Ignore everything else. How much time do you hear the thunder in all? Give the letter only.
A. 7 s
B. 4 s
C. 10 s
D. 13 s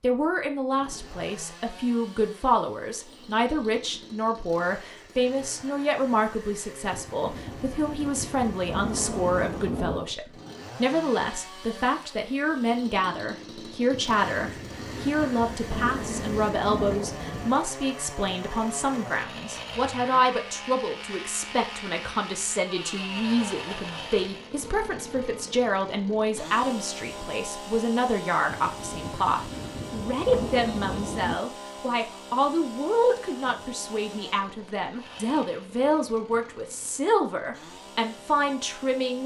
C.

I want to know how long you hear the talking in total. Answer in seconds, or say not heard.
39 s.